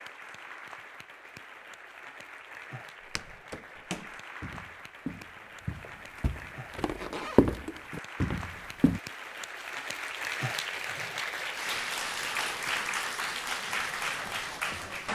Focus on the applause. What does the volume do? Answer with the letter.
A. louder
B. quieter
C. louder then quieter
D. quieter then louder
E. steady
A.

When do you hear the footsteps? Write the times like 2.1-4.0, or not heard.
3.0-9.0.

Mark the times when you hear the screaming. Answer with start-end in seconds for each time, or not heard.
not heard.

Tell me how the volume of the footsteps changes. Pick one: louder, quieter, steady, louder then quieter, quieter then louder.
louder then quieter.